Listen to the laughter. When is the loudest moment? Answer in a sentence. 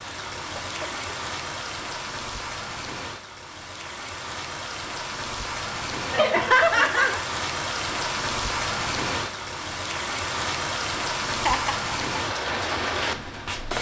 The loudest moment of the laughter is at 7 seconds.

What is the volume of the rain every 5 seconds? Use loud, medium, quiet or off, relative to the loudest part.
medium, loud, loud.